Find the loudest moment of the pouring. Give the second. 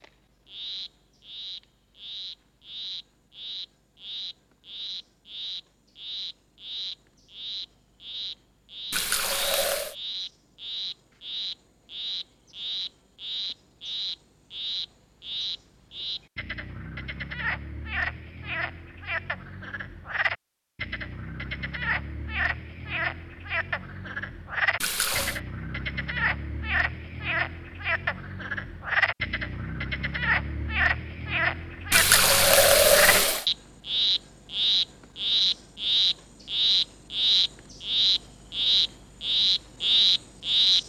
33 s.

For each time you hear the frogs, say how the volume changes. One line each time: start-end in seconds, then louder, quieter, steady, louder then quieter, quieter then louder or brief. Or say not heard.
0.0-40.8 louder.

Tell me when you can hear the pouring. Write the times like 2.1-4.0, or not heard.
8.9-9.9, 24.8-25.4, 31.9-33.5.